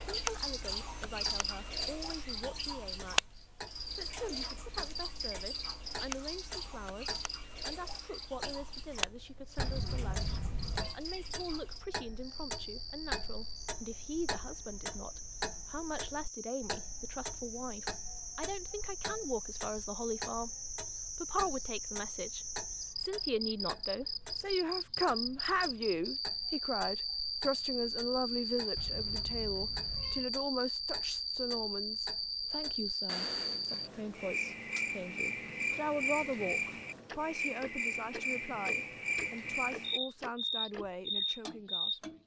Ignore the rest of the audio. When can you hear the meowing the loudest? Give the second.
10 s.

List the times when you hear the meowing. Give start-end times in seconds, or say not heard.
9.6-10.9, 28.8-30.3.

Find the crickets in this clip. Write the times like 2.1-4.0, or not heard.
0.0-42.0.